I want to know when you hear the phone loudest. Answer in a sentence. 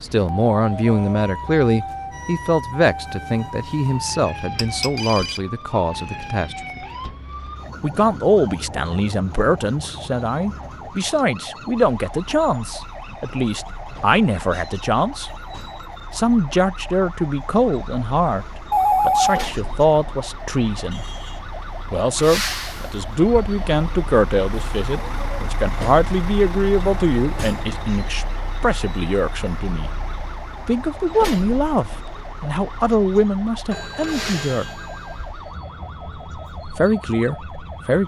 The loudest moment of the phone is at 19 seconds.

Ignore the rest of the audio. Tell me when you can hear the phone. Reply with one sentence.
You can hear the phone from 4.5 to 5.4 s, from 18.7 to 19.5 s and from 33.7 to 35.3 s.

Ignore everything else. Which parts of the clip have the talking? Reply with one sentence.
The talking can be heard from 0.0 to 6.8 s, from 7.8 to 15.3 s, from 16.1 to 21.1 s, from 21.9 to 29.9 s, from 30.6 to 34.6 s and from 36.8 to 38.0 s.